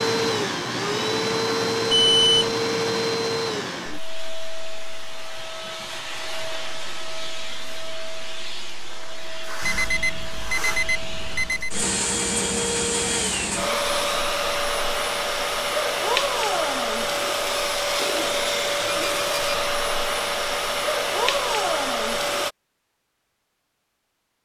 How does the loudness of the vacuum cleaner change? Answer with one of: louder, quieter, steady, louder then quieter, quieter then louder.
quieter then louder.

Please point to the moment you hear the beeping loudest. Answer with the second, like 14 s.
2 s.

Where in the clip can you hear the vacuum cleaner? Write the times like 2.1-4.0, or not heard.
0.0-22.5.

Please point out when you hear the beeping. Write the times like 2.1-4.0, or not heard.
1.9-2.5, 9.6-11.8, 18.8-19.6.